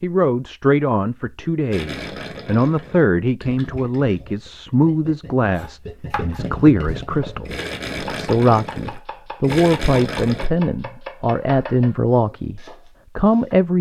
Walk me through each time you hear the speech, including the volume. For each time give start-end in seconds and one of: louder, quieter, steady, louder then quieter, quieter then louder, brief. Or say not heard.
0.0-13.7 steady.